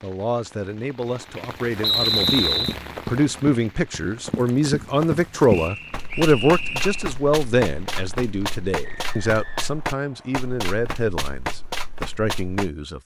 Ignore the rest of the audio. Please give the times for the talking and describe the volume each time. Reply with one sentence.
You can hear the talking from 0.0 to 13.0 s, getting louder then quieter.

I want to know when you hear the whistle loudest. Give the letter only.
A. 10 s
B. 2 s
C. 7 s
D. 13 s
B.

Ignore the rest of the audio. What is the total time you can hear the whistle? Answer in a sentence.
You can hear the whistle for 4 seconds altogether.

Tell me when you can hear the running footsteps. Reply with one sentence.
You can hear the running footsteps from 2.1 to 12.7 s.